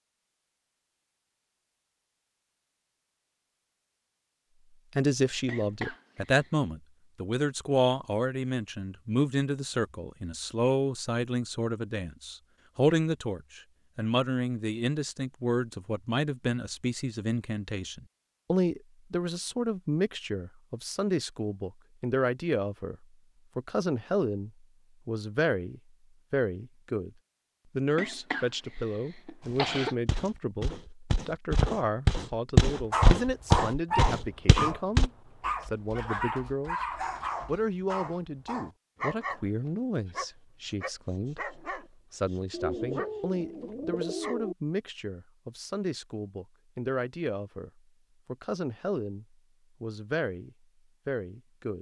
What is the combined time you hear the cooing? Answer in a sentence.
The cooing can be heard for 2 seconds in total.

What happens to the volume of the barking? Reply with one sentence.
The loudness of the barking goes down.